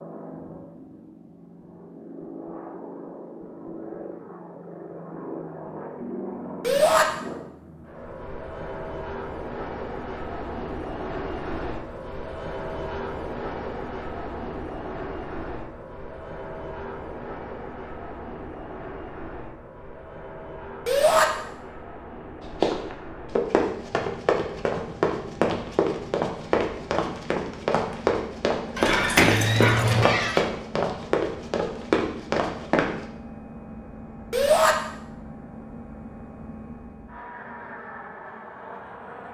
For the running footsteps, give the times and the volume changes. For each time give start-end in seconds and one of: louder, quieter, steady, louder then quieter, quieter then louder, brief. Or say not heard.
22.4-33.0 steady.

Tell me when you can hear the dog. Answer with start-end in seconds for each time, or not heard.
28.8-30.4.